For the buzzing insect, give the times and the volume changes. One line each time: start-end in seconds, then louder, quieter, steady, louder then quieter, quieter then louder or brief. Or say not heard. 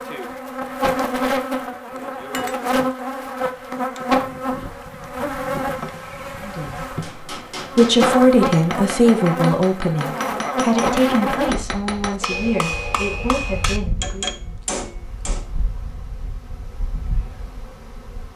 0.0-18.3 quieter.